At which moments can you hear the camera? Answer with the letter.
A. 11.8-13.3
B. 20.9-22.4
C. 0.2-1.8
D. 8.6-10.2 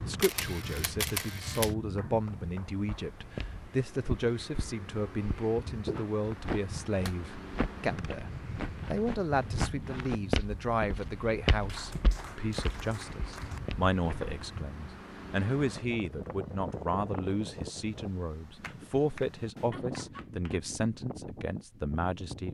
C.